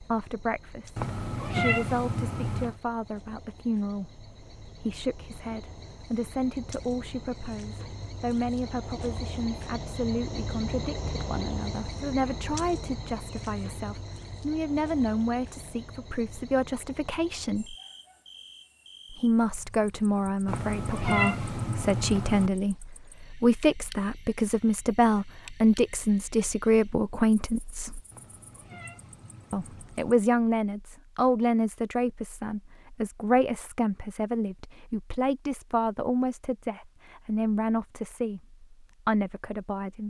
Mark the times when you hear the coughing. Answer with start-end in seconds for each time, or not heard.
not heard.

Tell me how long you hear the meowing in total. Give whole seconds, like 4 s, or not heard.
6 s.